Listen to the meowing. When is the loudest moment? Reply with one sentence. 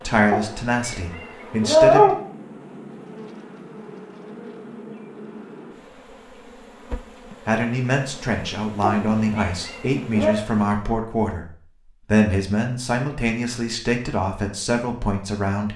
The loudest moment of the meowing is at 2 seconds.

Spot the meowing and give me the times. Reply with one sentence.
You can hear the meowing from 0.3 to 2.1 s and from 8.8 to 10.3 s.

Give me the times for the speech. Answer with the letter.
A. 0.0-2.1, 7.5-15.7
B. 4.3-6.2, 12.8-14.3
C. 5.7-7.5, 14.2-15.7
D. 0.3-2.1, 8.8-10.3
A.